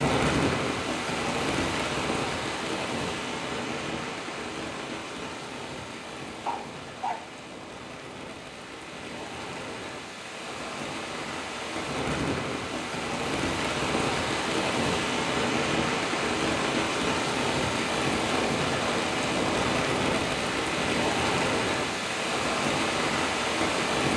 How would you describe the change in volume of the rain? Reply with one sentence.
The volume of the rain goes down, then up.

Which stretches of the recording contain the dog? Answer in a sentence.
The dog can be heard from 6.5 to 7.3 s.